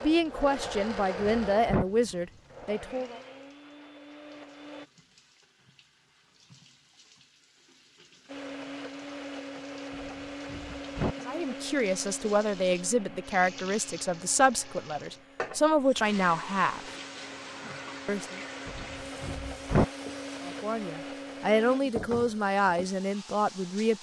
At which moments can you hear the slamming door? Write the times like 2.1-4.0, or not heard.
0.7-1.9, 9.9-11.2, 18.6-19.9.